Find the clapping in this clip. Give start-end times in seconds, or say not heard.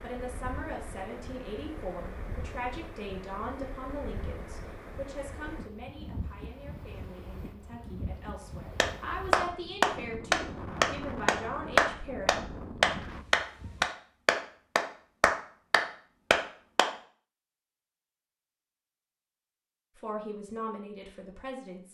8.8-16.9.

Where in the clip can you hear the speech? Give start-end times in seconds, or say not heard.
0.0-12.4, 19.9-21.8.